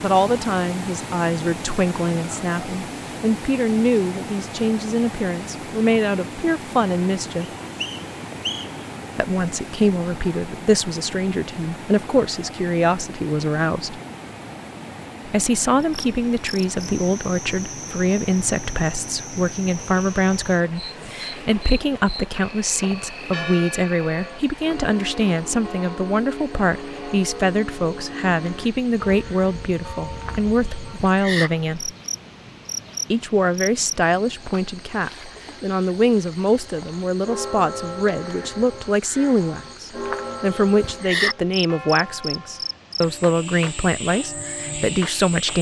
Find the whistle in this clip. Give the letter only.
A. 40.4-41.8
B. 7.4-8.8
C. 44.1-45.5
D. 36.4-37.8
B.